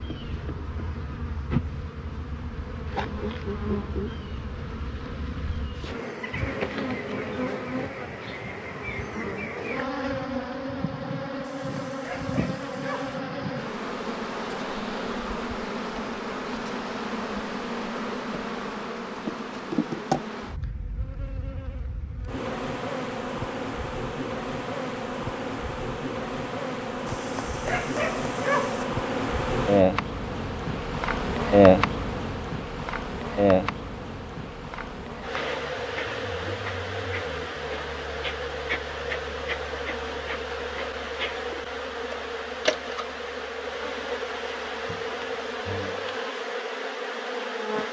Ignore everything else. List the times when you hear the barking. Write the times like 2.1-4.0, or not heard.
11.4-13.2, 27.1-28.9.